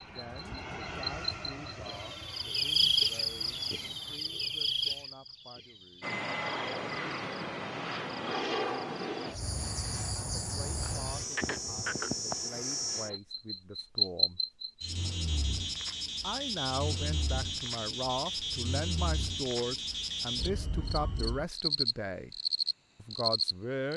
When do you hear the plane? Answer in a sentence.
You can hear the plane from 0.0 to 4.2 s and from 6.0 to 13.2 s.